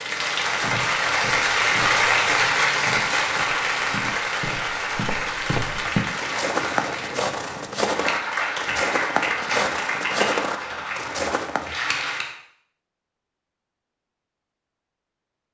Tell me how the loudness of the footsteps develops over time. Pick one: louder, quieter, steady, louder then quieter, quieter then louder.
louder.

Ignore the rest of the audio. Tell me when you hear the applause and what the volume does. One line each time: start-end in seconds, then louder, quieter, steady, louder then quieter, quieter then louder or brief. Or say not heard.
0.0-12.3 quieter.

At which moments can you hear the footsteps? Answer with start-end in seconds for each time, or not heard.
0.6-11.7.